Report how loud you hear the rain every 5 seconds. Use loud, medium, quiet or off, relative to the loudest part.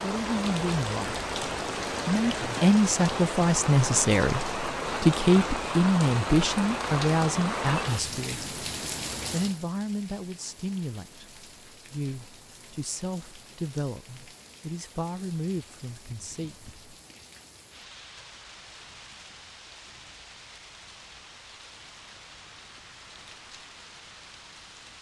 loud, loud, quiet, quiet, quiet.